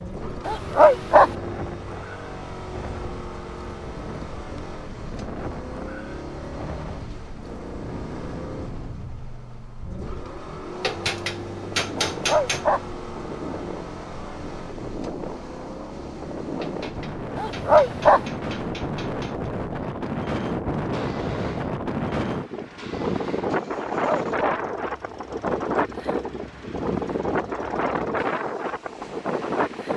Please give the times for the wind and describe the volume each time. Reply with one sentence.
You can hear the wind from 0.0 to 29.9 s, getting louder.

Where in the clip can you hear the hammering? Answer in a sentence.
You can hear the hammering from 10.8 to 12.7 s and from 16.6 to 19.5 s.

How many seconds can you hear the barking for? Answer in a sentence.
You can hear the barking for 3 seconds altogether.